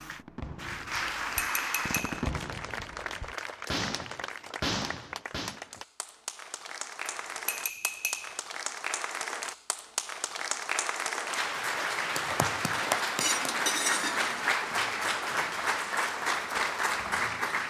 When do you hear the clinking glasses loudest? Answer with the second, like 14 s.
14 s.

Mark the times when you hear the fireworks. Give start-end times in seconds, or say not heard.
0.1-5.6.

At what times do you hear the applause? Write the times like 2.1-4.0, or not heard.
0.0-17.6.